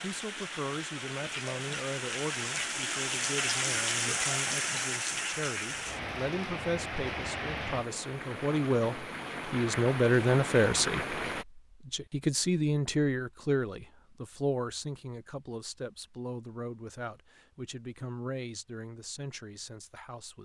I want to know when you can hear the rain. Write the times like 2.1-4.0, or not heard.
0.0-11.4.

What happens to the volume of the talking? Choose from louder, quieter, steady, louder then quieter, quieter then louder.
louder then quieter.